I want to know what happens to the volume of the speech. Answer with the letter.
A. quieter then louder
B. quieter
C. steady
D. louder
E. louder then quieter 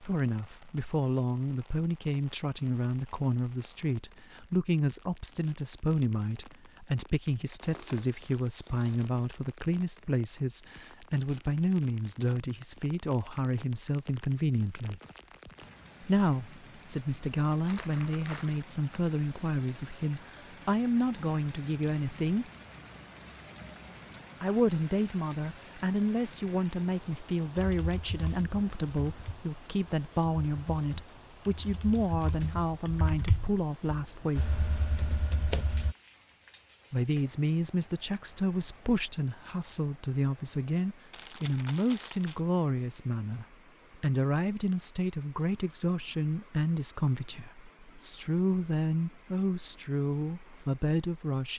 C.